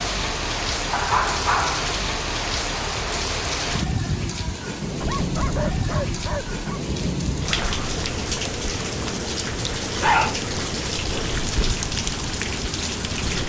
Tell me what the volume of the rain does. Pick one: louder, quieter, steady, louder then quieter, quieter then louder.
steady.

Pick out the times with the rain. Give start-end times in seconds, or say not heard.
0.0-13.4.